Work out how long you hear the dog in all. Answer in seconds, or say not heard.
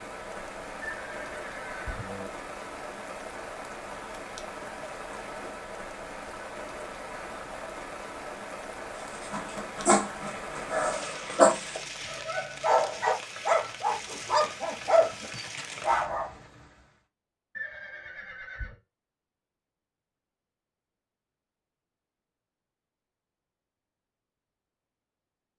7 s.